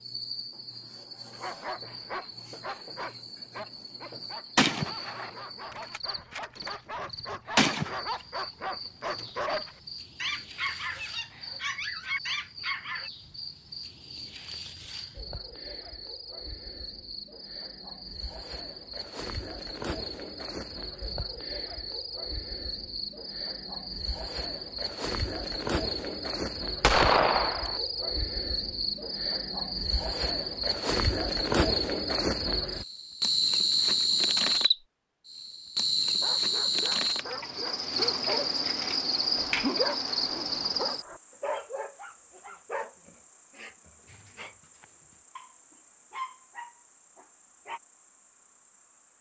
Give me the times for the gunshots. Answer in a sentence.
You can hear the gunshots from 4.5 to 5.3 s, from 5.9 to 6.7 s, from 7.5 to 8.0 s and from 26.8 to 27.8 s.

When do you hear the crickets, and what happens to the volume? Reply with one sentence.
The crickets can be heard from 0.0 to 49.1 s, getting louder then quieter.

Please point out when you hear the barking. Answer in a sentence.
The barking can be heard from 1.3 to 13.1 s and from 36.2 to 47.8 s.